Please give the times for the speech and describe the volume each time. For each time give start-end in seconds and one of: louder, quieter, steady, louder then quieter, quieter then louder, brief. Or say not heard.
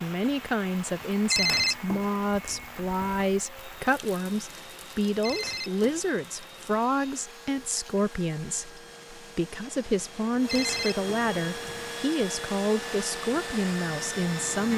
0.0-14.7 steady.